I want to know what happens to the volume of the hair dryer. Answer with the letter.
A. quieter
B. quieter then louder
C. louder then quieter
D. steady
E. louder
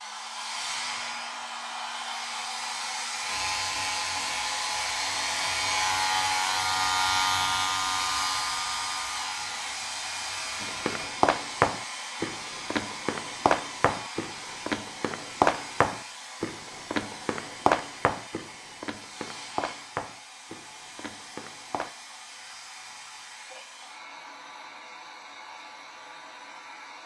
A.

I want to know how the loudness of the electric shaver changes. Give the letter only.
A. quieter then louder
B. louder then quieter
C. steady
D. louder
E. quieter
B.